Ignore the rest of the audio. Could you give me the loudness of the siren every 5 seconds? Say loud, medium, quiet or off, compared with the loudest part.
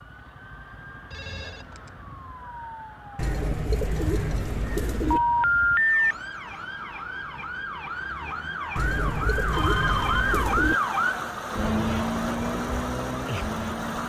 quiet, medium, loud.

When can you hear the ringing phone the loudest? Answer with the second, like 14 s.
6 s.